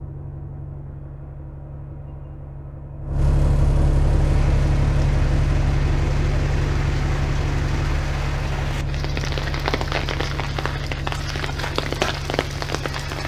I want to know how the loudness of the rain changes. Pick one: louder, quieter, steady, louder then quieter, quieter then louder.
louder.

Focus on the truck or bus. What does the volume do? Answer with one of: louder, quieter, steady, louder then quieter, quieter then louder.
louder then quieter.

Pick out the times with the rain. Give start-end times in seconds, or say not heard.
4.0-13.2.